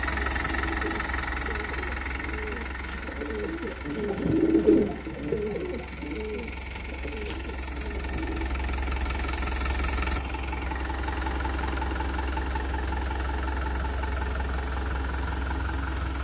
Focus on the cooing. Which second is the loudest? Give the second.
5 s.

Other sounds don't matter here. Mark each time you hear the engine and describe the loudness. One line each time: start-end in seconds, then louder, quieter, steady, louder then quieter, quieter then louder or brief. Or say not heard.
0.0-16.1 quieter then louder.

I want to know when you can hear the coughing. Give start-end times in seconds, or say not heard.
not heard.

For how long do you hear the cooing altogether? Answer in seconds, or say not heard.
8 s.